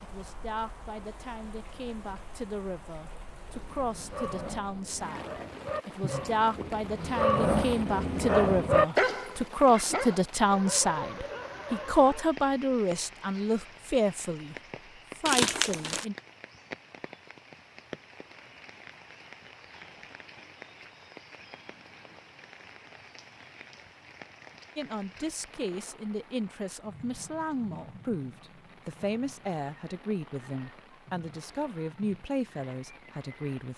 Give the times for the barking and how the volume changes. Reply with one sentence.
You can hear the barking from 3.5 to 12.3 s, getting louder then quieter.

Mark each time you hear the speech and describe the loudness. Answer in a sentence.
The speech can be heard from 0.0 to 14.6 s, getting louder; briefly from 15.2 to 16.1 s; and from 24.8 to 33.7 s, at a steady volume.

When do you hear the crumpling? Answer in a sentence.
The crumpling can be heard from 15.2 to 16.1 s.